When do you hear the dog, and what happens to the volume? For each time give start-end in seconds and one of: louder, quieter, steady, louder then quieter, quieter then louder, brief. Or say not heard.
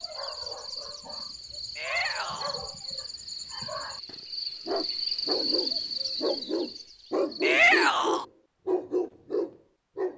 0.0-10.1 louder.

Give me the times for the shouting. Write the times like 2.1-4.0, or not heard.
1.8-2.6, 7.4-8.2.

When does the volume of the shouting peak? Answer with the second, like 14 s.
8 s.